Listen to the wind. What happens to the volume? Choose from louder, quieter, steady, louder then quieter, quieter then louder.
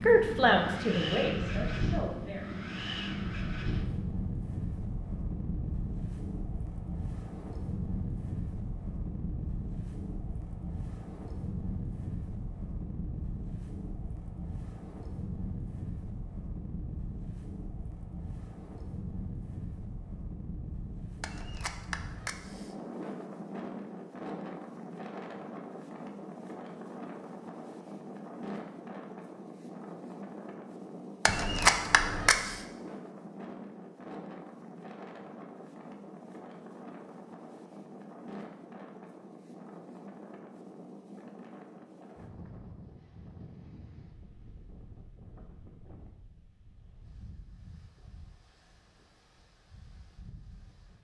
quieter.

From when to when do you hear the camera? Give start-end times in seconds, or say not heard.
21.2-22.8, 31.2-32.6.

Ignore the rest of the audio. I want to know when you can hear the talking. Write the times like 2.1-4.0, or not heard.
0.0-2.5.